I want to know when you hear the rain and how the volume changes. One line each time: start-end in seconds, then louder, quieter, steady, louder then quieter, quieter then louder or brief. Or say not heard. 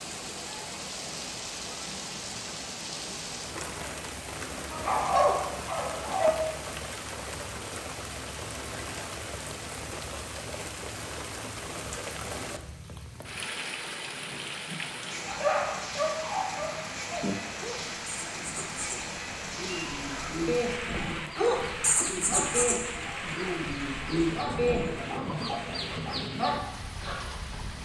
0.0-27.8 steady.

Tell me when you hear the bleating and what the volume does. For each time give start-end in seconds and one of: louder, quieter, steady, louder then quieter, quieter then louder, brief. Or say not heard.
not heard.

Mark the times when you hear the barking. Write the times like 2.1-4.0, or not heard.
4.7-6.3, 15.2-24.9.